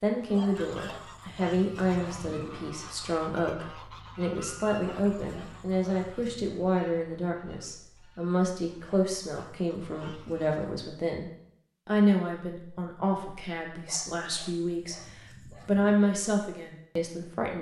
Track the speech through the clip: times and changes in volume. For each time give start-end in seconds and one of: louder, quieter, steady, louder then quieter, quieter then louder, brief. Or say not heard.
0.0-17.5 steady.